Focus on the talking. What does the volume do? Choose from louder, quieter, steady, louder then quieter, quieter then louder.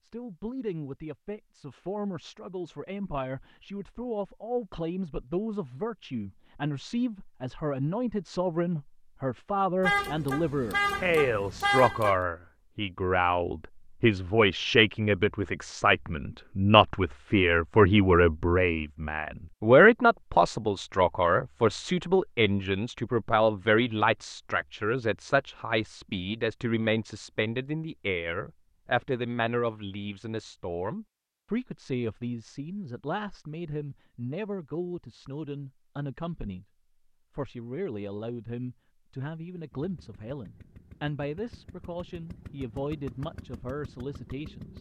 louder then quieter.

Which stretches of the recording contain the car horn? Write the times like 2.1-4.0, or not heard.
9.8-12.2.